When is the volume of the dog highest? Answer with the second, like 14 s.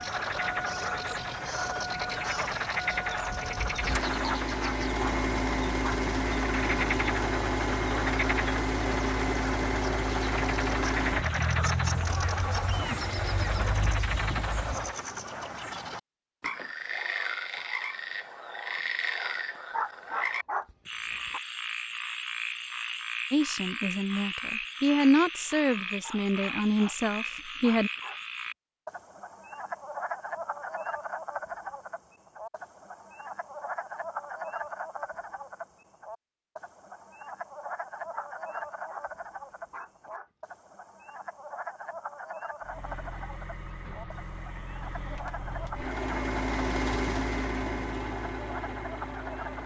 20 s.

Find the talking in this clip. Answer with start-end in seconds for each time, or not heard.
23.3-27.9.